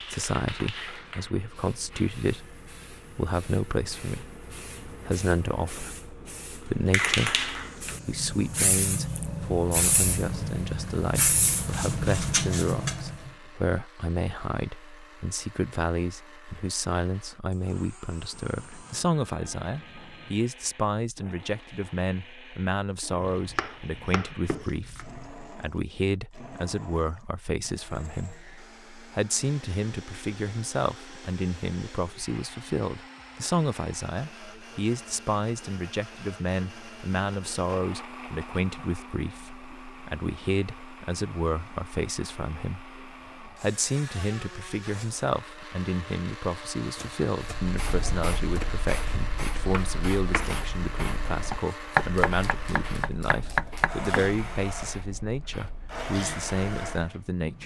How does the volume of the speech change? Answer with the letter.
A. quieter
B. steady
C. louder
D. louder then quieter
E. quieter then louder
B.